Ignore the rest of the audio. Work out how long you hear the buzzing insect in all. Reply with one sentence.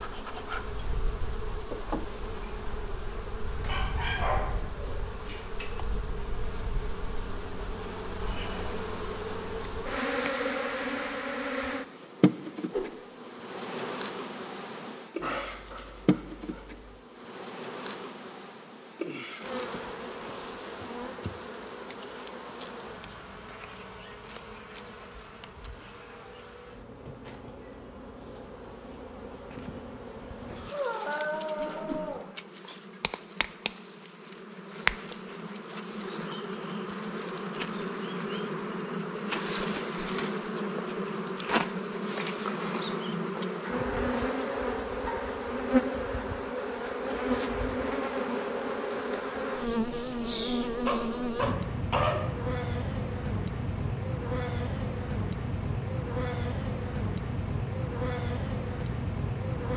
You can hear the buzzing insect for 60 seconds altogether.